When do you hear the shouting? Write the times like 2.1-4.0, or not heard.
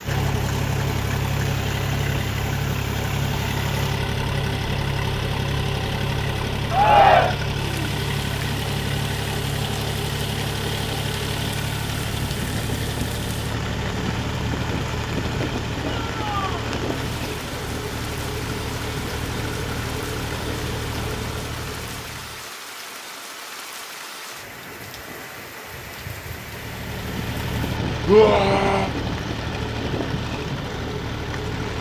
6.7-7.3, 16.1-16.7, 28.1-28.9.